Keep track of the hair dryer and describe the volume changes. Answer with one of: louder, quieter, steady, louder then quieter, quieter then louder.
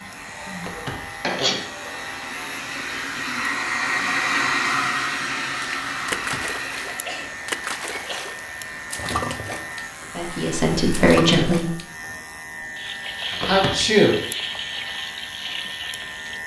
louder then quieter.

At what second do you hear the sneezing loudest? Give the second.
14 s.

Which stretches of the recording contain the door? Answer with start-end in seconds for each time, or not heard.
0.6-1.1, 6.0-6.6, 13.3-13.9.